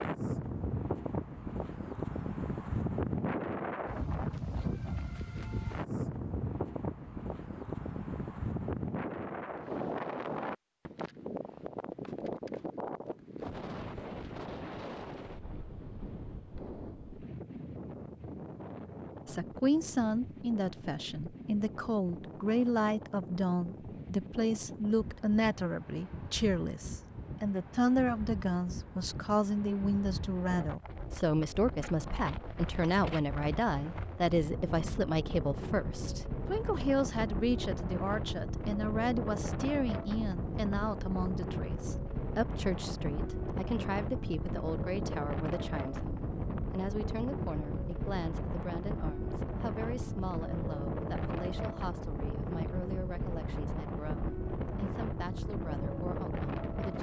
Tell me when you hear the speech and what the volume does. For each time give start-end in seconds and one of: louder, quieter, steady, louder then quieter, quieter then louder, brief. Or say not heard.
19.2-56.9 quieter.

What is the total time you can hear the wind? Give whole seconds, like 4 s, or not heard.
57 s.